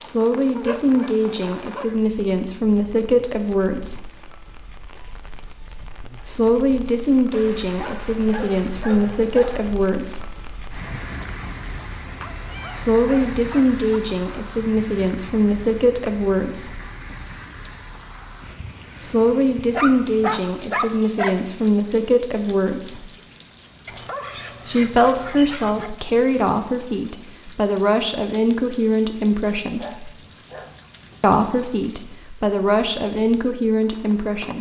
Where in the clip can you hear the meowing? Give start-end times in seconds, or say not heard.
not heard.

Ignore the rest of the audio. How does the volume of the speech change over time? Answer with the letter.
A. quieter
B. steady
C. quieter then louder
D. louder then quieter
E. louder
B.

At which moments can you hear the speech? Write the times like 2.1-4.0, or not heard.
0.0-4.1, 6.2-10.3, 12.7-16.8, 19.0-23.1, 24.6-30.1, 31.2-34.5.